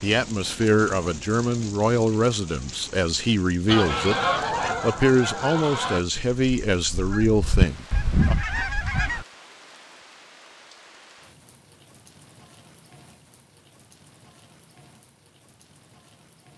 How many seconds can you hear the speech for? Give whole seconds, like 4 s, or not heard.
8 s.